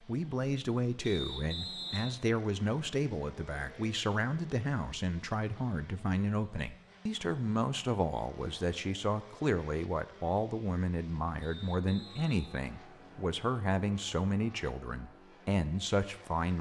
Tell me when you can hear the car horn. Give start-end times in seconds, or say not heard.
not heard.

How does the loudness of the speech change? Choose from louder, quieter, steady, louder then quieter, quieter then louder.
steady.